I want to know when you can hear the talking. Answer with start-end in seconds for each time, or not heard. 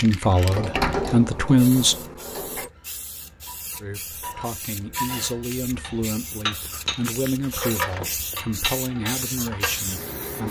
0.0-1.9, 3.8-10.4.